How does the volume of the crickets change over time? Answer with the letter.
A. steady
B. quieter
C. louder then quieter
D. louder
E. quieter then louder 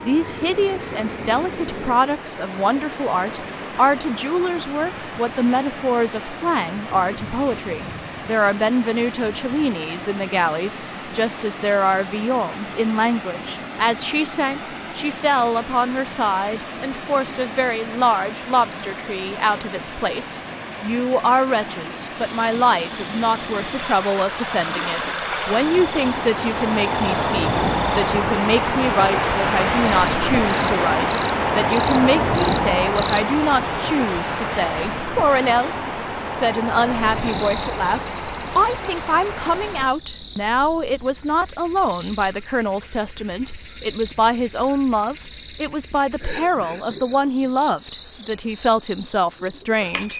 C.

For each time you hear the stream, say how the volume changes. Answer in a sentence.
You can hear the stream from 0.0 to 40.0 s, getting louder.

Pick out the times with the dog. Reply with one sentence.
The dog can't be heard in this clip.